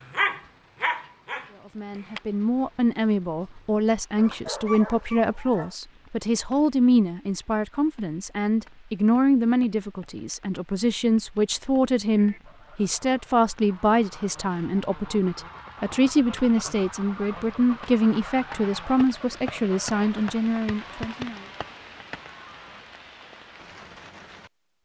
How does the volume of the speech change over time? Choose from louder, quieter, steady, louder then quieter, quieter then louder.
steady.